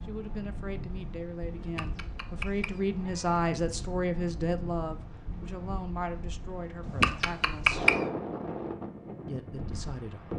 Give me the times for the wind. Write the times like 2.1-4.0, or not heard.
0.0-10.3.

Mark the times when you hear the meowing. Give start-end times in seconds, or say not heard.
1.6-3.4, 6.8-8.0.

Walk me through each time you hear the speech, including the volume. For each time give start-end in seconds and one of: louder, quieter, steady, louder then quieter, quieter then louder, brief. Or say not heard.
0.0-8.0 louder then quieter
9.2-10.3 brief.